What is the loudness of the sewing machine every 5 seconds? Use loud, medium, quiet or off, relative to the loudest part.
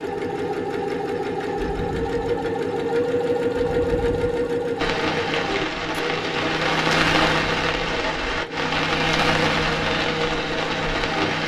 loud, medium, medium.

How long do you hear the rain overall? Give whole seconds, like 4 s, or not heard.
7 s.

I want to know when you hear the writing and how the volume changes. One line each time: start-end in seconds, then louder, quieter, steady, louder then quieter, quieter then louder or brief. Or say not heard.
not heard.